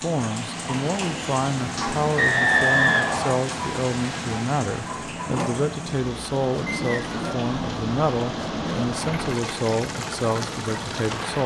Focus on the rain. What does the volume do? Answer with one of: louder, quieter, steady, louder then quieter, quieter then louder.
steady.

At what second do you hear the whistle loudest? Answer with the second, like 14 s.
3 s.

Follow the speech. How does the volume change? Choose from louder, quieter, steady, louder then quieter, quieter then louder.
steady.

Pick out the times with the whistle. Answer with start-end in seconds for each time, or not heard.
2.1-3.4, 6.7-7.2.